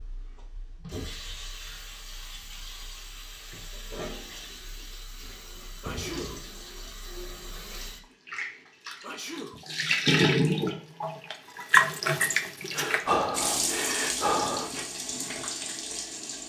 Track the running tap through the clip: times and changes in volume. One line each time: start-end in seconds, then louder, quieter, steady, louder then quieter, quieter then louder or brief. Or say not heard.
0.0-16.4 louder then quieter.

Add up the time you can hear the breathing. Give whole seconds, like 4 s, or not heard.
2 s.